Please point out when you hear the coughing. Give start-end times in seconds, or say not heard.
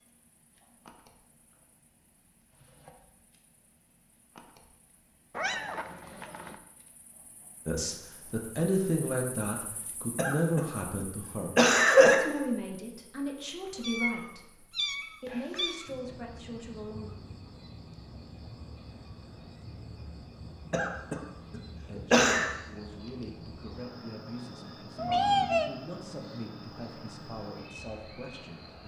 10.2-12.2, 20.7-22.5.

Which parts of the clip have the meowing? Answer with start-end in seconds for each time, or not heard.
5.3-6.5, 13.8-15.9, 24.9-25.7.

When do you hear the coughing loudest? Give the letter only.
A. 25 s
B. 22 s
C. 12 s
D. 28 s
C.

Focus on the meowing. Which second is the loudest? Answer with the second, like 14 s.
25 s.